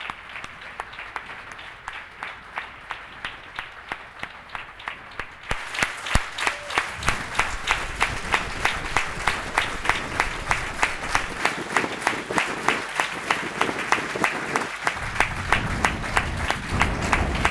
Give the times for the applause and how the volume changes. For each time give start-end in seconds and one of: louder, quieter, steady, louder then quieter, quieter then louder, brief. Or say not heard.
0.0-17.4 louder.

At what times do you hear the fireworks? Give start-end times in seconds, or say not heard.
15.6-17.4.